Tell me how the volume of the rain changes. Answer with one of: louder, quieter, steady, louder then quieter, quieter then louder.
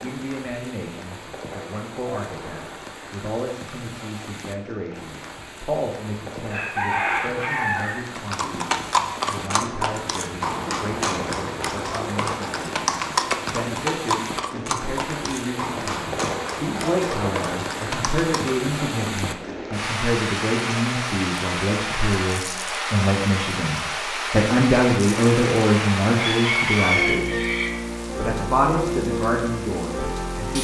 louder.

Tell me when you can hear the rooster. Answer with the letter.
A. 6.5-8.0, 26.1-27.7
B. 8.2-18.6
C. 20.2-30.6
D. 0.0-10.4
A.